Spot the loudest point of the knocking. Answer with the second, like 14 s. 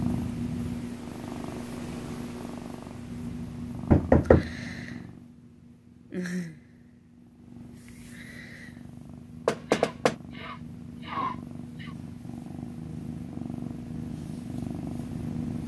4 s.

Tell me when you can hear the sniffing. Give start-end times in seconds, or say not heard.
9.7-11.9.